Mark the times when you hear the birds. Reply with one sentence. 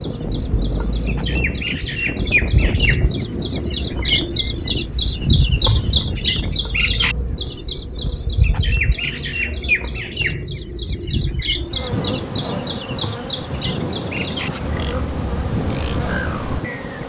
The birds can be heard from 0.0 to 17.0 s.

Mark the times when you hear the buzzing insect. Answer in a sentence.
The buzzing insect can be heard from 0.0 to 17.0 s.